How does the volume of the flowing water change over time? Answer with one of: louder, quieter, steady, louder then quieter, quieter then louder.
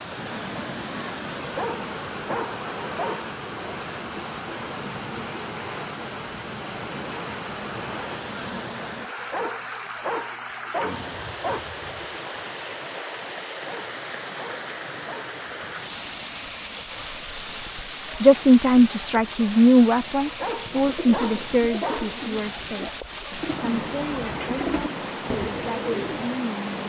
steady.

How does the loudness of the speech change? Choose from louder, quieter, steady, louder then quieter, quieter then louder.
quieter.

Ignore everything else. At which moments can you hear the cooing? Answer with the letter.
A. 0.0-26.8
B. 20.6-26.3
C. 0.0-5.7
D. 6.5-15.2
B.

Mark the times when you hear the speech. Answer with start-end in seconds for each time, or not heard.
18.2-26.8.